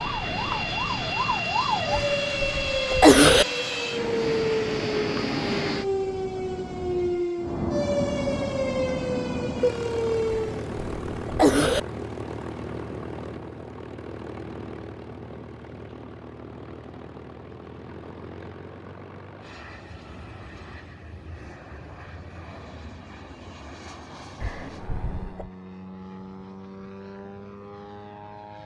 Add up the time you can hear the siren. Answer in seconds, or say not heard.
11 s.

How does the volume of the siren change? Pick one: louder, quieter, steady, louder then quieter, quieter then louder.
steady.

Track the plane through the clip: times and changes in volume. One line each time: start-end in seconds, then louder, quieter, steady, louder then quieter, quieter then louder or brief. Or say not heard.
0.0-28.6 quieter.